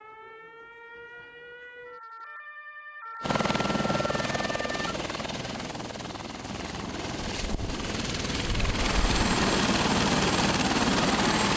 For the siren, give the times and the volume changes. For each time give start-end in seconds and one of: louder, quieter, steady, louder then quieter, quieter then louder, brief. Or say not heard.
0.0-5.0 louder.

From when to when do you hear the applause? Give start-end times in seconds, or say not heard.
not heard.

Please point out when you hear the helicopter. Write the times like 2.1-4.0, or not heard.
3.2-11.5.